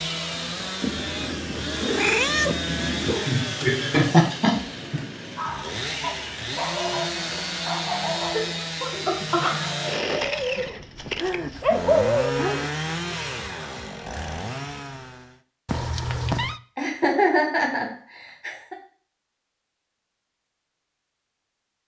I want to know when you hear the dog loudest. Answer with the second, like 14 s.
12 s.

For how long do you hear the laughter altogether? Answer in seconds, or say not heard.
5 s.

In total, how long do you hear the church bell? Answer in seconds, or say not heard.
not heard.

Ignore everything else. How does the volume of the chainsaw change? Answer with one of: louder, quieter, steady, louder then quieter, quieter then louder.
steady.